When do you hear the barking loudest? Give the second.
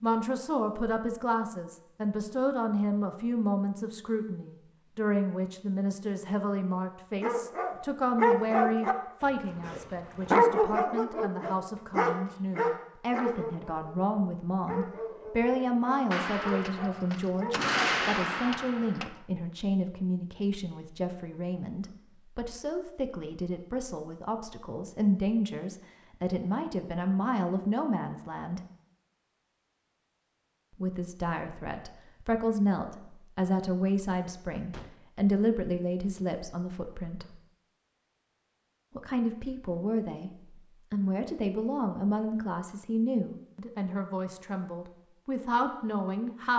10 s.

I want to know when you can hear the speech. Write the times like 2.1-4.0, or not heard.
0.0-28.6, 30.8-37.4, 39.0-40.3, 40.9-46.5.